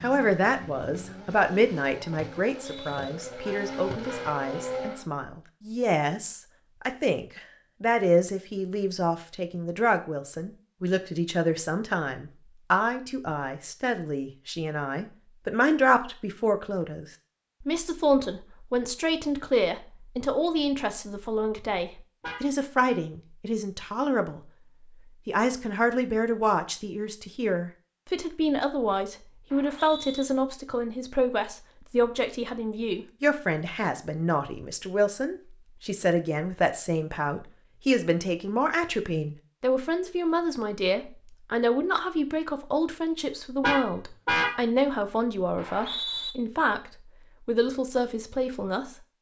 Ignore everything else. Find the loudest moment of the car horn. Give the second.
44 s.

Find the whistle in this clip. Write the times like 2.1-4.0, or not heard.
2.6-3.1, 29.5-30.2, 45.5-46.4.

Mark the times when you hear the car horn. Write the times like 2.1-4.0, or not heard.
3.5-4.4, 22.2-23.0, 43.6-44.5.